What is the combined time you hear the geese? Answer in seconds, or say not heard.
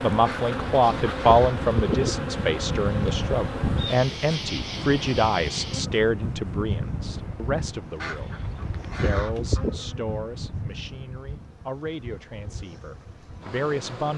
4 s.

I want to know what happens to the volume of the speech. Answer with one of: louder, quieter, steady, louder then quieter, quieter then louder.
quieter.